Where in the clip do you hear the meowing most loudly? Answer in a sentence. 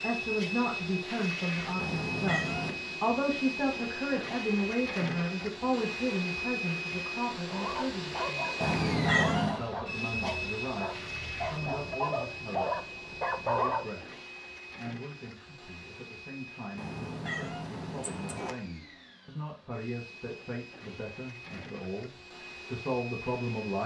The volume of the meowing peaks at 9 seconds.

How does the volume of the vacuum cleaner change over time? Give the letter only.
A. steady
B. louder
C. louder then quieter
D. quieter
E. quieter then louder
D.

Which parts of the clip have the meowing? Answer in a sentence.
The meowing can be heard from 1.8 to 2.8 s, from 8.6 to 9.6 s and from 16.8 to 18.6 s.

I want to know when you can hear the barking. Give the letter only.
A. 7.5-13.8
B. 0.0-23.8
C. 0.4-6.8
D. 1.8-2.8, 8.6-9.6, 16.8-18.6
A.